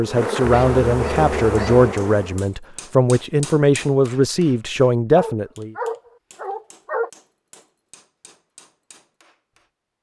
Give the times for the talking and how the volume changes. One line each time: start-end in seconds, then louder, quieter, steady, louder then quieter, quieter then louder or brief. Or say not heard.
0.0-5.8 steady.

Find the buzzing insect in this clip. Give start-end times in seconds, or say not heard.
0.0-2.5.